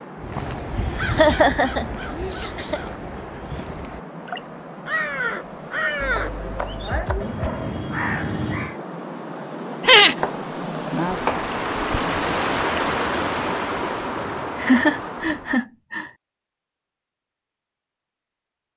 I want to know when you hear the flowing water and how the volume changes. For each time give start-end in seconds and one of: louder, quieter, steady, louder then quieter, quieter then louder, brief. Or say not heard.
0.0-15.7 louder.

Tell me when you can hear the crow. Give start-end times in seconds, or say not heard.
0.1-8.8.